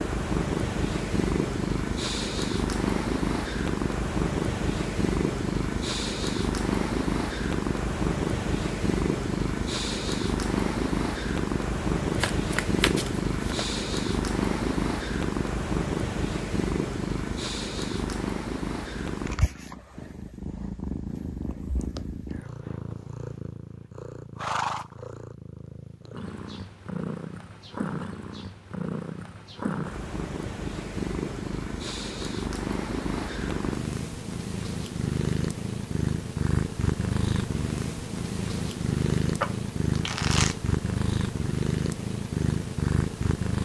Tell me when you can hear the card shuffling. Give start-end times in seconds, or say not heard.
12.2-13.6, 39.4-40.6.